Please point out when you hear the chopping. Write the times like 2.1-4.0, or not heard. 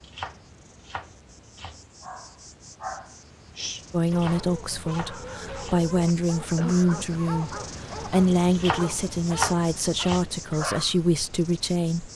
0.0-1.9, 4.0-5.9, 8.5-10.3.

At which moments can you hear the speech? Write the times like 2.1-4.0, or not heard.
3.9-12.1.